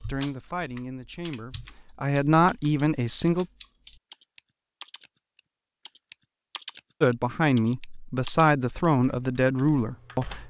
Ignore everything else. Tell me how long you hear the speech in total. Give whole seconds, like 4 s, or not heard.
7 s.